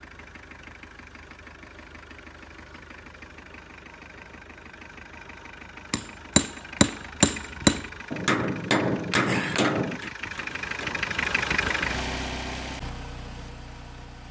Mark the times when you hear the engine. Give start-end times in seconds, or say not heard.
0.0-14.2.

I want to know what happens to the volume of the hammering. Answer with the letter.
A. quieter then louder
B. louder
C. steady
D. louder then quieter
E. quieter
E.